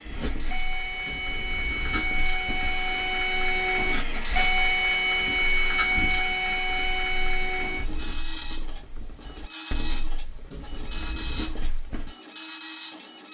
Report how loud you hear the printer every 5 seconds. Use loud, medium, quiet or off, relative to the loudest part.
loud, loud, medium.